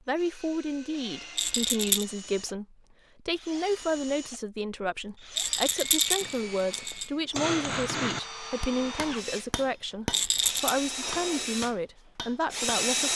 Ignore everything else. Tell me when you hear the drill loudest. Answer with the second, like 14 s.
13 s.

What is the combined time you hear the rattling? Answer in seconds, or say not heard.
3 s.